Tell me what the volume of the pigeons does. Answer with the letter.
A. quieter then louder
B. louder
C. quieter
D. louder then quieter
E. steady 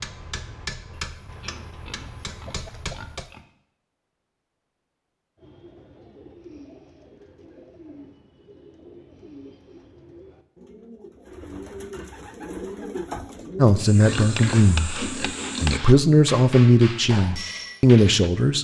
B.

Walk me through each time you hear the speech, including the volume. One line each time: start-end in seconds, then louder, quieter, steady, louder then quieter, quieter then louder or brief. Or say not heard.
13.6-18.6 quieter then louder.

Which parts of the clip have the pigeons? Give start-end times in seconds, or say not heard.
5.3-13.8.